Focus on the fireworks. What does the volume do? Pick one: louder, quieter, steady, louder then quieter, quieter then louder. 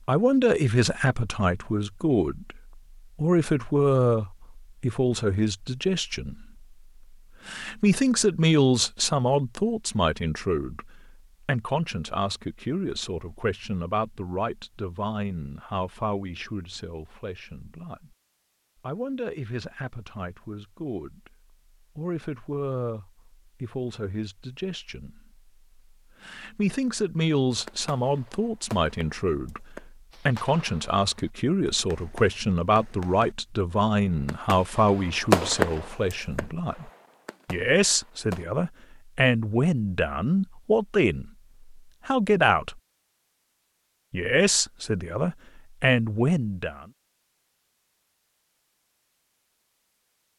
louder then quieter.